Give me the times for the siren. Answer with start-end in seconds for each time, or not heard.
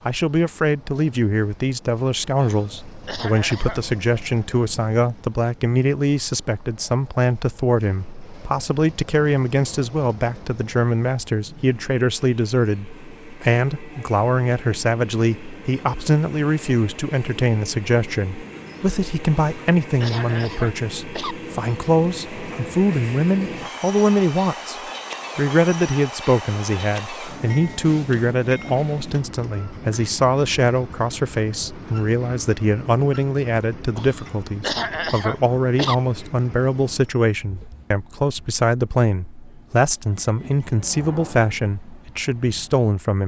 not heard.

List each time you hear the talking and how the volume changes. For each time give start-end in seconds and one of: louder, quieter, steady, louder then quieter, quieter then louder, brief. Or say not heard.
0.1-24.8 steady
25.4-43.2 steady.